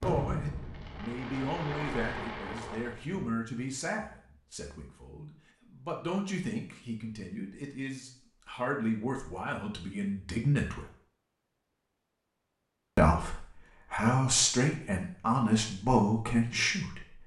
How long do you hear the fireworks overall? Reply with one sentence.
The fireworks can be heard for 3 seconds in total.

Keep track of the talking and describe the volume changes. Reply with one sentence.
The volume of the talking goes up.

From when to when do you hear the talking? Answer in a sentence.
You can hear the talking from 0.0 to 10.8 s and from 12.9 to 17.2 s.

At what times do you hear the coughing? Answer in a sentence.
The coughing can't be heard in this clip.